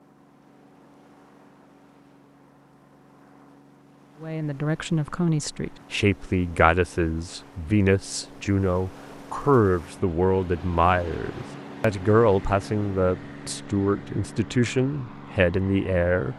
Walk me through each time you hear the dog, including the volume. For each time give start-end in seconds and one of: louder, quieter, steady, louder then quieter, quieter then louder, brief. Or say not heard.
not heard.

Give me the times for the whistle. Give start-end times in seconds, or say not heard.
not heard.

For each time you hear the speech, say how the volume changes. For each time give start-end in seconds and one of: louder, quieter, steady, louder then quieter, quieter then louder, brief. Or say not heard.
4.2-16.3 steady.